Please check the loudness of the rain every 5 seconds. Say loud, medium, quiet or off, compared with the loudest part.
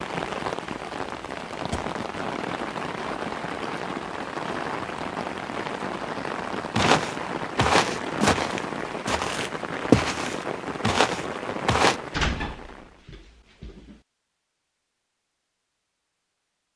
loud, loud, loud, off.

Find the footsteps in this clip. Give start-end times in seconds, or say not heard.
6.8-12.0.